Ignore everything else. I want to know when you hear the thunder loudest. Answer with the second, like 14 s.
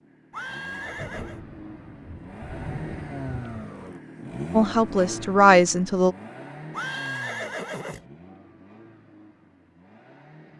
3 s.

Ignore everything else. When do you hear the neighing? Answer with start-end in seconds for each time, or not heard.
0.3-1.4, 6.7-8.1.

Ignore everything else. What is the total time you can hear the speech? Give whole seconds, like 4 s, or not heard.
2 s.